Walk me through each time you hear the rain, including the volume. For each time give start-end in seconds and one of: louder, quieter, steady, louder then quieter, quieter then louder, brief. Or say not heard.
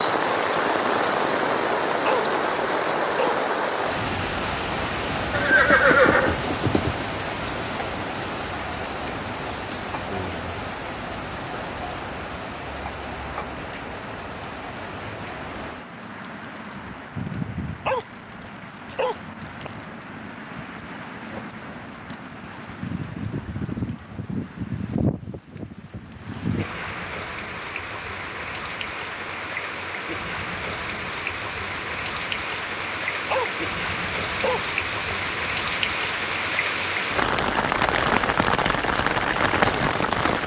0.0-40.4 quieter then louder.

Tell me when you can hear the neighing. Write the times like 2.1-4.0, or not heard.
5.3-7.0.